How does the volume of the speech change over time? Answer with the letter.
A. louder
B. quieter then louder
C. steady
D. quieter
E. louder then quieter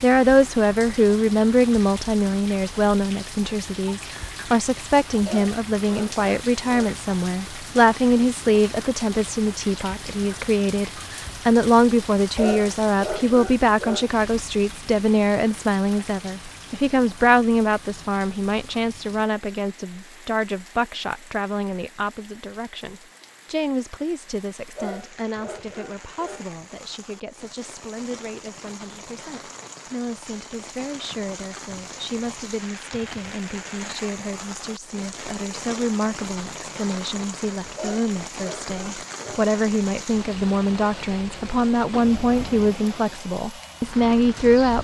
B.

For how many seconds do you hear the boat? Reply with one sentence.
You can't hear the boat here.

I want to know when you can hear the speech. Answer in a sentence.
The speech can be heard from 0.0 to 44.7 s.